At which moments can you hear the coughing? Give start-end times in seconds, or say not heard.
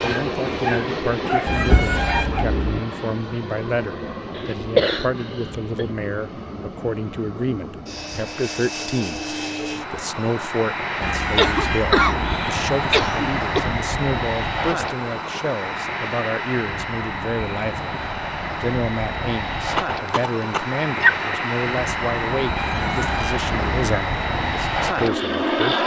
4.3-5.8, 11.3-13.7, 19.8-21.1.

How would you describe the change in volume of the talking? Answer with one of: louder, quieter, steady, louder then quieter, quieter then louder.
steady.